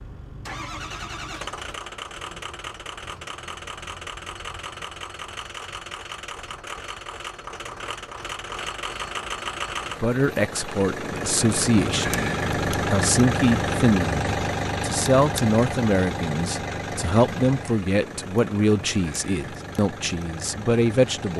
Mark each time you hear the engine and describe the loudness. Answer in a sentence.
You can hear the engine from 0.0 to 21.3 s, getting louder then quieter.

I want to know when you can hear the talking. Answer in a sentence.
The talking can be heard from 10.0 to 21.3 s.